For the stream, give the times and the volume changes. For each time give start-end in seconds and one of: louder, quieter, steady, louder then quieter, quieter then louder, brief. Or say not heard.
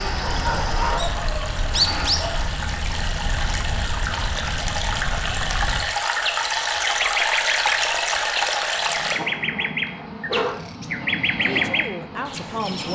0.0-9.2 louder.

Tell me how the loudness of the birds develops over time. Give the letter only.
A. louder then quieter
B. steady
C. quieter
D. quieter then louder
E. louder
D.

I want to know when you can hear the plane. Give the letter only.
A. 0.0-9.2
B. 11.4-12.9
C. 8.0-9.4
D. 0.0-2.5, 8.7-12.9
D.